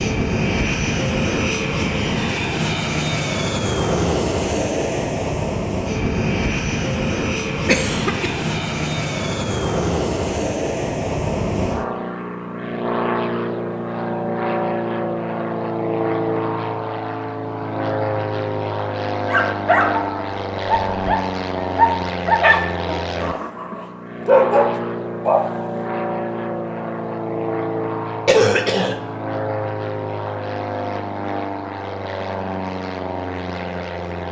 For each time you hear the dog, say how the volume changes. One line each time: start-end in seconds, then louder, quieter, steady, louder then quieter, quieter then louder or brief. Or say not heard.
19.2-25.5 quieter then louder.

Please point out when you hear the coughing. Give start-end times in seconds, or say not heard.
7.7-8.4, 28.2-28.9.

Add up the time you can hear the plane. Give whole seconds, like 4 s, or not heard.
34 s.